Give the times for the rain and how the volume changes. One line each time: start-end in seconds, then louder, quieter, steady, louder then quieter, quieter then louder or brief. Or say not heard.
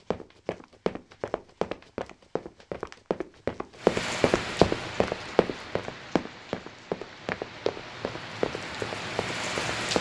3.8-9.9 quieter then louder.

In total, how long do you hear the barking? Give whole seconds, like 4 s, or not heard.
not heard.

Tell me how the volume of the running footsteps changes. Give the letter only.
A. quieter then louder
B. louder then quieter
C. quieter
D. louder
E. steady
B.